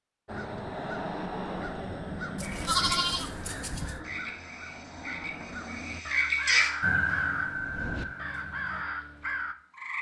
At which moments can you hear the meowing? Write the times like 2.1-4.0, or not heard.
not heard.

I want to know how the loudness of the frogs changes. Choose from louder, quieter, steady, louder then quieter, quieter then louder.
louder then quieter.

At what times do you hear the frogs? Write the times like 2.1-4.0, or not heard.
2.4-9.9.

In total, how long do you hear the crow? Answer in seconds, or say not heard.
9 s.